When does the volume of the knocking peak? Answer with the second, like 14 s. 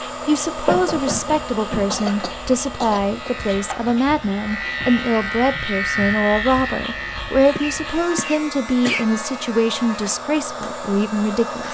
1 s.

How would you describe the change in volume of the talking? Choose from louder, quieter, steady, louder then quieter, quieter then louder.
steady.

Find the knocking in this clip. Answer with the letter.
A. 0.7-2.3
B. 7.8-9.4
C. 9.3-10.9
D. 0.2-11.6
A.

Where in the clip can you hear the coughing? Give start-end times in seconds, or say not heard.
1.9-3.3, 7.5-9.1.